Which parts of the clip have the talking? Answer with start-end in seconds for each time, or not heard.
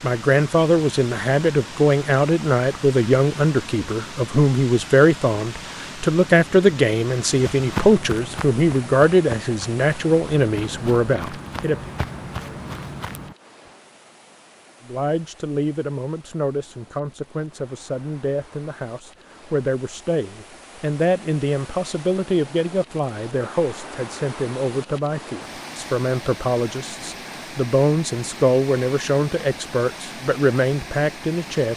0.0-11.9, 14.8-31.7.